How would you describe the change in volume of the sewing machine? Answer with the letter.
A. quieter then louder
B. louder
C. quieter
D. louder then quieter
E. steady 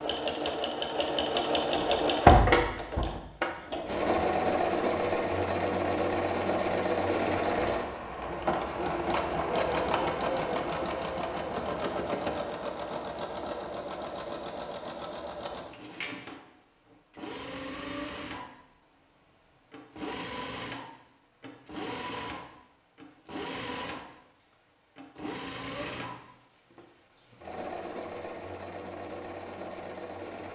C.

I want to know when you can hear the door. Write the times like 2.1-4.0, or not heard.
1.8-3.0.